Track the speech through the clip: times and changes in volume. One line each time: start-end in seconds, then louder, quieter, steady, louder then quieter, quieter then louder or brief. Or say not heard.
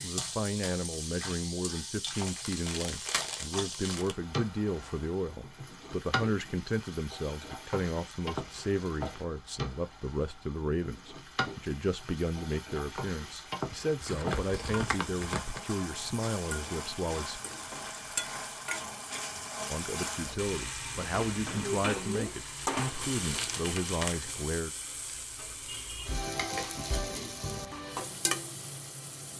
0.0-17.4 steady
19.7-24.7 steady.